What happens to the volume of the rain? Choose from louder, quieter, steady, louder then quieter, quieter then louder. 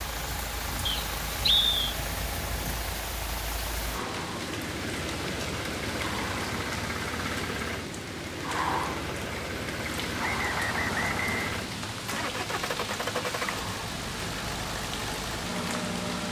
steady.